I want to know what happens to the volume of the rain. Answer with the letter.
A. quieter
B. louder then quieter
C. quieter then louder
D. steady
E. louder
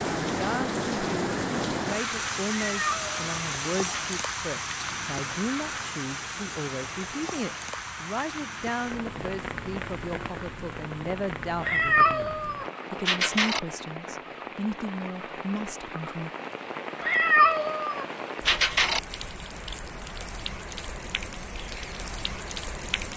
A.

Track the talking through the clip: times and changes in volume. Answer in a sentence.
The talking can be heard from 0.2 to 16.3 s, at a steady volume.